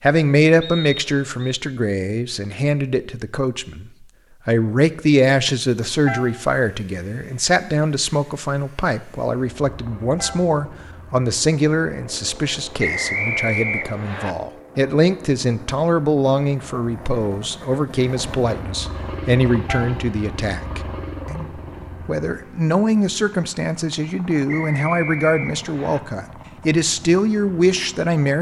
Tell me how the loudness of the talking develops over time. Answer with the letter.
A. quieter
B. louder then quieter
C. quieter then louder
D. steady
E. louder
D.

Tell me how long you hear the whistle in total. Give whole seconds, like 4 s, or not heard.
4 s.